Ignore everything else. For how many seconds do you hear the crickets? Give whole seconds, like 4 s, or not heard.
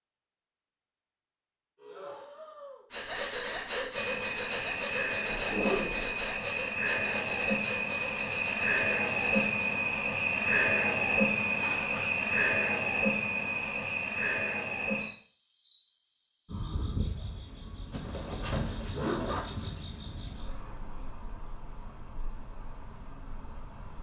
20 s.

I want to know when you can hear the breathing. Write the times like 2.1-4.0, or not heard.
1.8-9.8.